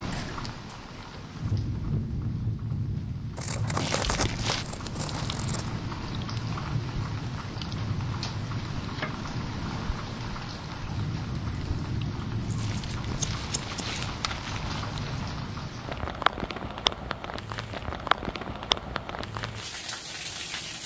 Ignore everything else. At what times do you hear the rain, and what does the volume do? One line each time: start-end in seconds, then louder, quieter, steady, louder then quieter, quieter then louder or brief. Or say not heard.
0.0-20.8 steady.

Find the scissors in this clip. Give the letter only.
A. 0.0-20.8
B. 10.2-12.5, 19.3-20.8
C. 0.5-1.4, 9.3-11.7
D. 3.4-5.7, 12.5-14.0
D.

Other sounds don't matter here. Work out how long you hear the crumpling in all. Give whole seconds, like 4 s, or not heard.
3 s.